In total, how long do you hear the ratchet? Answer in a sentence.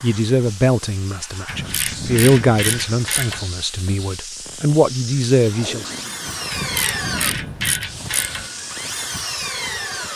The ratchet can be heard for 4 seconds in total.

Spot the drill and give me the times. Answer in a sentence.
The drill can be heard from 5.5 to 10.1 s.